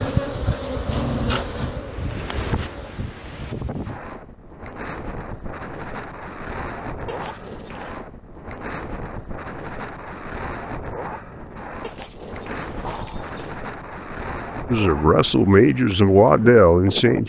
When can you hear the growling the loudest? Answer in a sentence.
The loudest moment of the growling is at 1 second.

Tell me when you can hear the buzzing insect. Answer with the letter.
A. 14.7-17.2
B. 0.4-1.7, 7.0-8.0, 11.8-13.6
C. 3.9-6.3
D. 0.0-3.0
D.